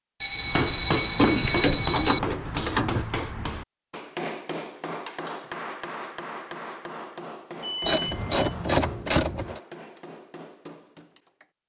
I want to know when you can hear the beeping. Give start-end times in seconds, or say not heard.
0.2-2.2, 7.6-8.4.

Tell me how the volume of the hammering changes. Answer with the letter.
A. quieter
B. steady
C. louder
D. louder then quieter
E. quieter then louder
A.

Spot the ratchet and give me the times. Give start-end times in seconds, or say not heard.
1.1-3.0, 7.8-9.6.